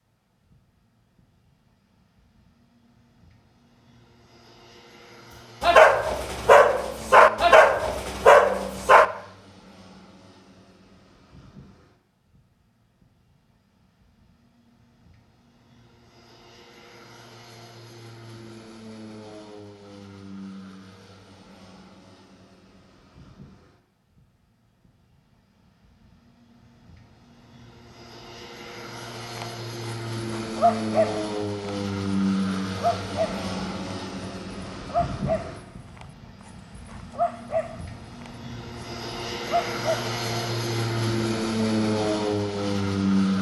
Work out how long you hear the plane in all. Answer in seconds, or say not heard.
43 s.